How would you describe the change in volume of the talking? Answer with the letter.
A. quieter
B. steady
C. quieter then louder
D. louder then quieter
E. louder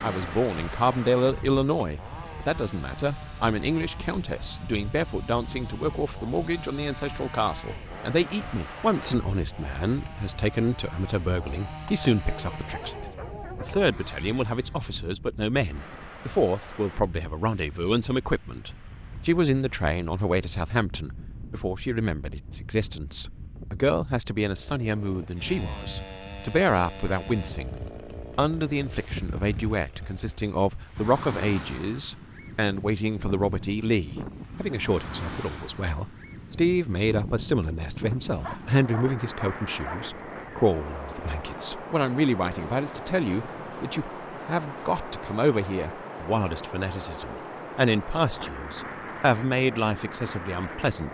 B.